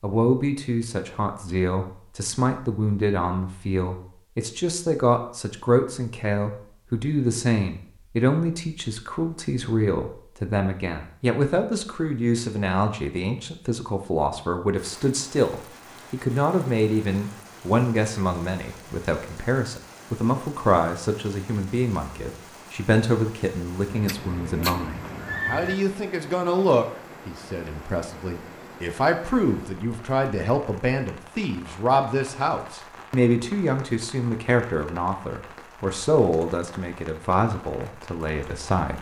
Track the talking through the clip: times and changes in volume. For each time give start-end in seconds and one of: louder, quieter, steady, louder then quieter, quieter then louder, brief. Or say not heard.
0.0-38.9 steady.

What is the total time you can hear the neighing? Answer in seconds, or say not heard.
2 s.